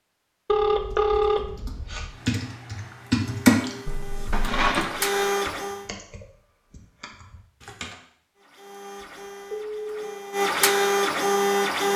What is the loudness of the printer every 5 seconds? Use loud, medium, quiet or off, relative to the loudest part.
quiet, medium, loud.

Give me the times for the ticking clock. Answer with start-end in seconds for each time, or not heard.
not heard.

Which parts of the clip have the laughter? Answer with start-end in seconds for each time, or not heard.
not heard.